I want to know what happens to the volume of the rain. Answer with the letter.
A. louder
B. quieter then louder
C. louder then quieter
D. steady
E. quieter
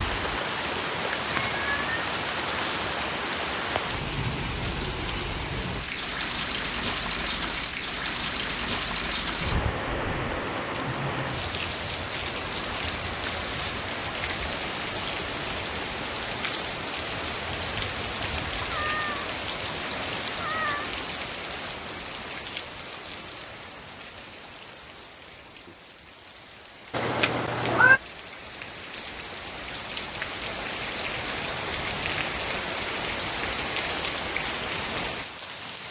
B.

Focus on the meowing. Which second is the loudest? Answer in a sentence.
The loudest moment of the meowing is at 28 seconds.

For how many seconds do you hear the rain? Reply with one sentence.
You can hear the rain for 36 seconds altogether.